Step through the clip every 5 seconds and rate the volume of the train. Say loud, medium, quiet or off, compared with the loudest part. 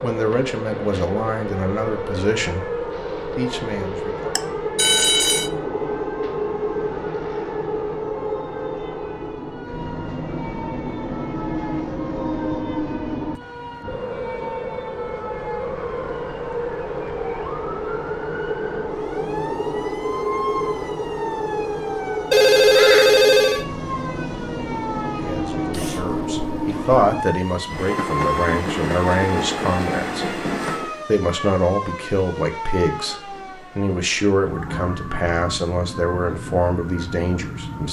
loud, loud, loud, loud, loud, loud, medium, off.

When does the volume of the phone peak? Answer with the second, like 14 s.
23 s.